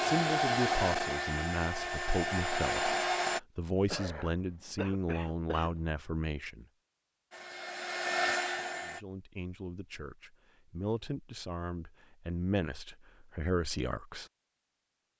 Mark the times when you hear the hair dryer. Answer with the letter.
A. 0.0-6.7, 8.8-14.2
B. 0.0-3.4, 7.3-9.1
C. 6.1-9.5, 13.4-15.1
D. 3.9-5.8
B.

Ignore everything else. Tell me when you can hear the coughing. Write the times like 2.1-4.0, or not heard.
3.9-5.8.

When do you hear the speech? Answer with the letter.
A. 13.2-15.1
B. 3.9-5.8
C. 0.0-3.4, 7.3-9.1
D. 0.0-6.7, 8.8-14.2
D.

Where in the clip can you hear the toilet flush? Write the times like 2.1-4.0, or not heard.
not heard.